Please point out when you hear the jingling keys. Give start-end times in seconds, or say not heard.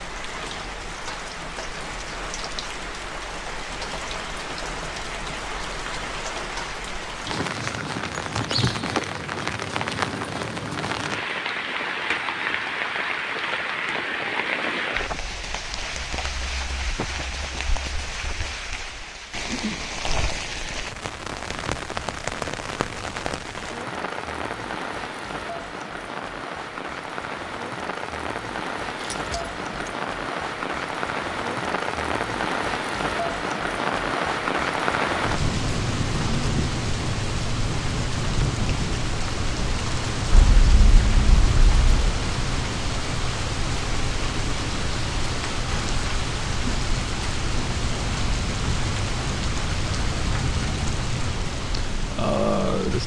8.3-9.0, 29.0-29.9, 40.3-42.1.